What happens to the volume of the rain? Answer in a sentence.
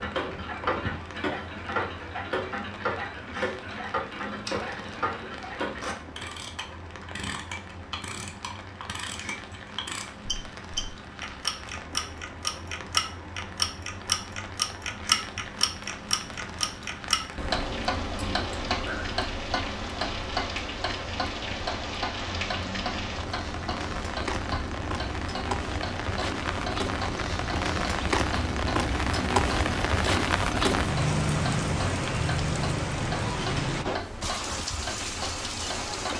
The volume of the rain goes up.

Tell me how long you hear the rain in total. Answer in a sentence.
You can hear the rain for 36 seconds altogether.